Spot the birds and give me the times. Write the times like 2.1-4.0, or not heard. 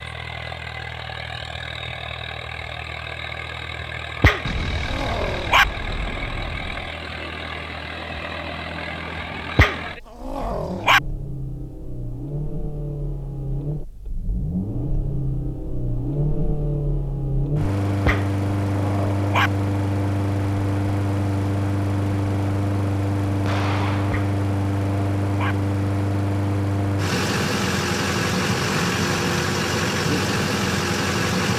not heard.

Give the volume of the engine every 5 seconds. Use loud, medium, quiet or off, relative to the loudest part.
medium, medium, medium, loud, loud, loud, loud.